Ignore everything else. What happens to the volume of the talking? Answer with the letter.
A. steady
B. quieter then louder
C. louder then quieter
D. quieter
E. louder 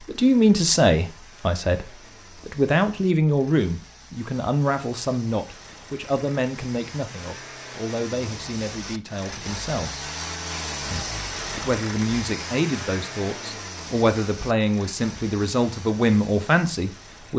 B.